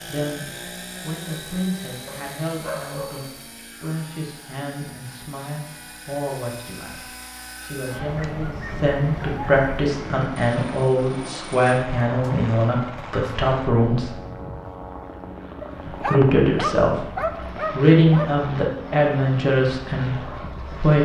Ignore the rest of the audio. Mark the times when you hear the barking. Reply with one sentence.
You can hear the barking from 2.0 to 3.4 s, from 8.0 to 9.7 s and from 15.6 to 18.4 s.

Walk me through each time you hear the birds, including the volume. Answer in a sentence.
The birds can't be heard in this clip.